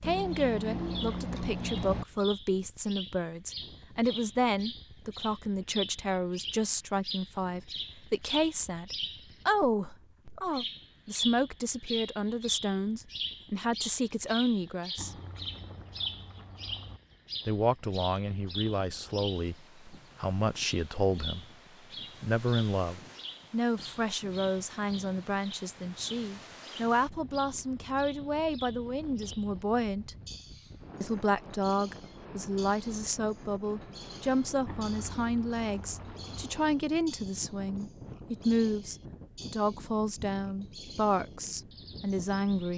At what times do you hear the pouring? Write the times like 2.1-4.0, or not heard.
0.0-2.0, 14.9-17.0, 34.6-36.5.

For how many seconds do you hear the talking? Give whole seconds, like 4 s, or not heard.
39 s.